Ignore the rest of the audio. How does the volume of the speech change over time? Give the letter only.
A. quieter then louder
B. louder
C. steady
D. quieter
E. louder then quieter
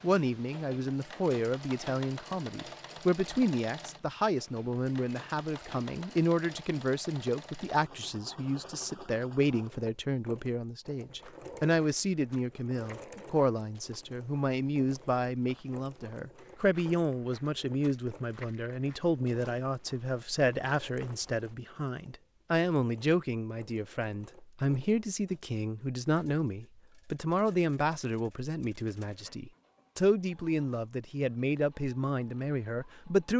C.